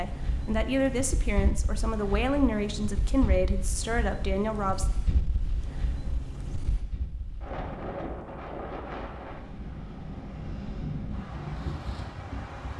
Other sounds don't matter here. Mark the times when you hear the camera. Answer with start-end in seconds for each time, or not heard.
not heard.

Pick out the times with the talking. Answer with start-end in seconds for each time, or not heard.
0.0-4.9.